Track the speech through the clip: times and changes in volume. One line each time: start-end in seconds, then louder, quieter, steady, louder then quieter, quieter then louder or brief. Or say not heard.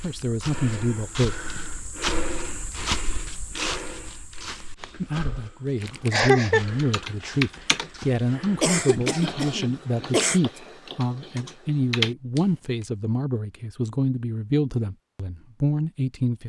0.0-1.4 brief
5.0-16.4 steady.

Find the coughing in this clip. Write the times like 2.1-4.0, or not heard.
6.1-6.7, 8.6-10.4.